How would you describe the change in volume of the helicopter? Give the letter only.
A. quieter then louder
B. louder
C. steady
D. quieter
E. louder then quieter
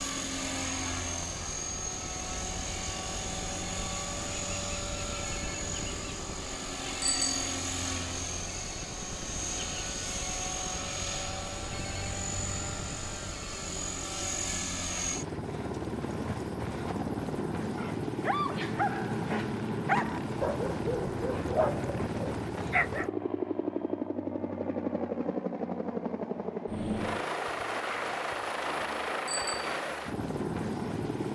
C.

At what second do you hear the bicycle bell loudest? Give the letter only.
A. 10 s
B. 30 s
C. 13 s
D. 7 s
D.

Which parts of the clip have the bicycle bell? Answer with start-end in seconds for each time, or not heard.
7.0-7.5, 29.2-29.8.